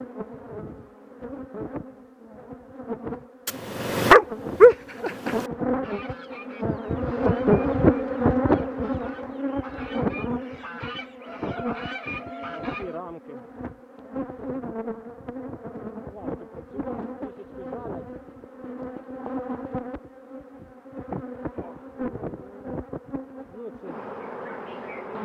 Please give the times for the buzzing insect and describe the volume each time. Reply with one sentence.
The buzzing insect can be heard from 0.0 to 25.2 s, getting louder then quieter.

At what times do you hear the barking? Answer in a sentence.
You can hear the barking from 3.5 to 5.5 s.